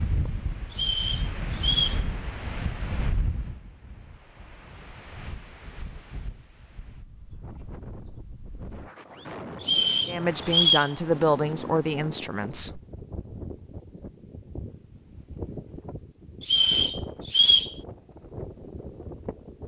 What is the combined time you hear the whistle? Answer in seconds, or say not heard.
4 s.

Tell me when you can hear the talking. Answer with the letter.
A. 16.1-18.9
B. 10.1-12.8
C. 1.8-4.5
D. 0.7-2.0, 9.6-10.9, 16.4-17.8
B.